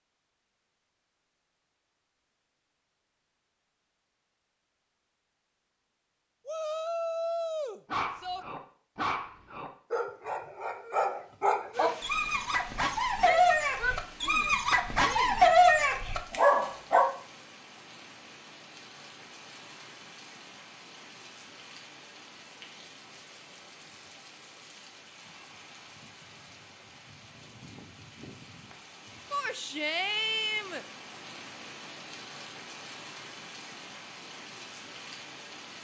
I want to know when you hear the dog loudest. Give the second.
16 s.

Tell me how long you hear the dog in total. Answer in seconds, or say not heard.
9 s.